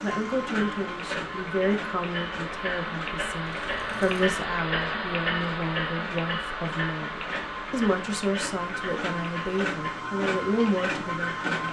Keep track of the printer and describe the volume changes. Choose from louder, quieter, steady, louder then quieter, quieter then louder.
quieter then louder.